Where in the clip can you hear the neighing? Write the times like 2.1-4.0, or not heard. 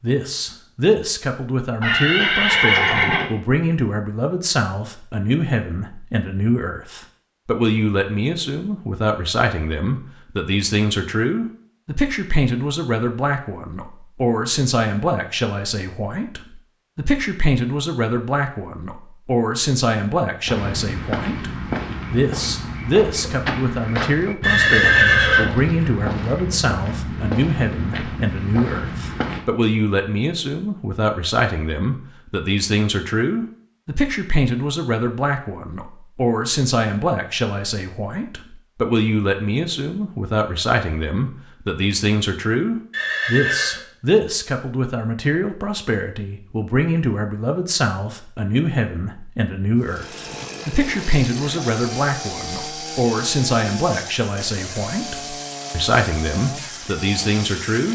1.8-3.3, 24.4-25.9, 42.9-43.8.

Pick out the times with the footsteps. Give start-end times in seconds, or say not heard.
20.4-29.4.